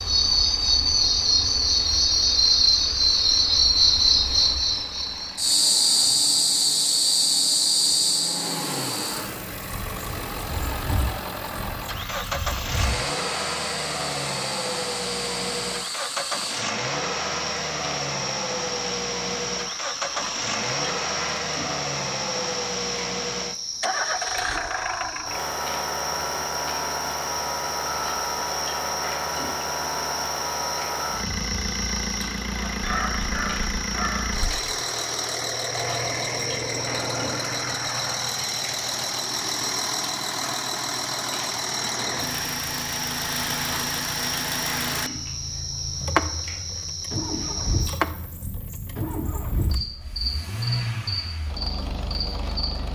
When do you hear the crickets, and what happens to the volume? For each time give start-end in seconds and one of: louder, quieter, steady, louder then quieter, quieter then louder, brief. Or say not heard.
0.0-52.8 quieter.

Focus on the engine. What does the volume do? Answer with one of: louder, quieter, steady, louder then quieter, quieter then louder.
louder.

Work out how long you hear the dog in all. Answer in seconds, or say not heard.
2 s.